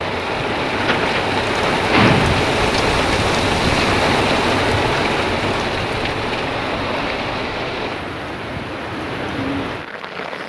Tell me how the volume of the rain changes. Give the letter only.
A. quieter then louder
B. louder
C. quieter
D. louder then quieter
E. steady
C.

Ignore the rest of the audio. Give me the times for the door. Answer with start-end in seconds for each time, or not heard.
0.8-2.4.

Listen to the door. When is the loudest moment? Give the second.
2 s.